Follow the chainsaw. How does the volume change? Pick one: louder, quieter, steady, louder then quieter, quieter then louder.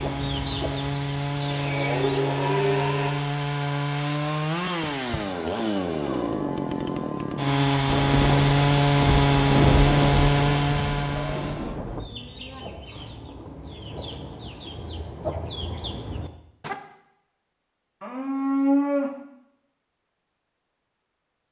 louder.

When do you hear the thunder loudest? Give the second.
10 s.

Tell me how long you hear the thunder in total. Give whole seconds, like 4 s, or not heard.
4 s.